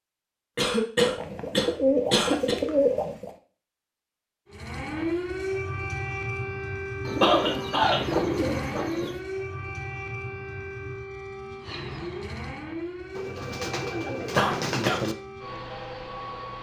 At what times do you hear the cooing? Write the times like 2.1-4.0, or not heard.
1.0-3.3, 7.0-9.2, 13.2-15.2.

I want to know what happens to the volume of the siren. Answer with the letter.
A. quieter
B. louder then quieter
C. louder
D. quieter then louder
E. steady
A.